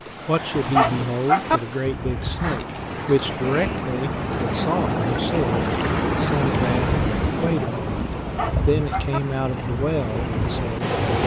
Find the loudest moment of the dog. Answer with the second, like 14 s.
1 s.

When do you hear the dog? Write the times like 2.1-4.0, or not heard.
0.7-1.6, 8.3-9.2.